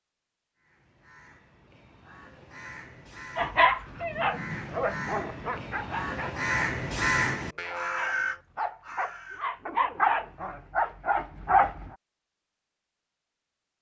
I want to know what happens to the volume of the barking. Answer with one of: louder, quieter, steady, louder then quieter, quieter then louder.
quieter then louder.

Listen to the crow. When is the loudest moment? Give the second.
7 s.